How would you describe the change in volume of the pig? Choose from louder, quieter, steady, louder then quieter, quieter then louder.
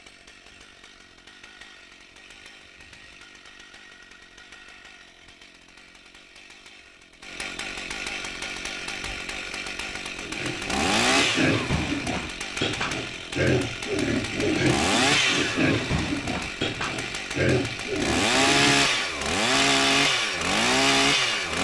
steady.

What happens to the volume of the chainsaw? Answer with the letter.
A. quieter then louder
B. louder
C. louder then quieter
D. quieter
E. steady
B.